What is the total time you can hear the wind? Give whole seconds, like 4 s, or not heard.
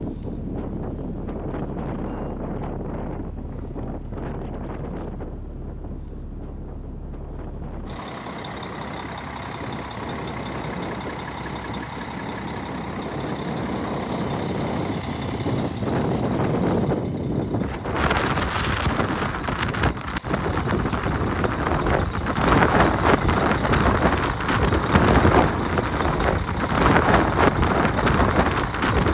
29 s.